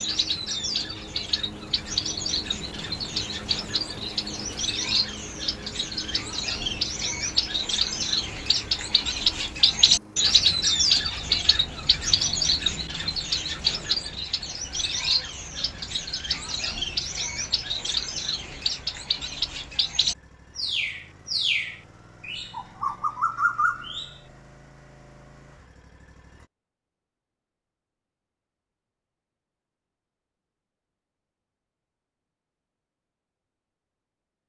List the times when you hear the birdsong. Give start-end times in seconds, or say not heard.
0.0-24.2.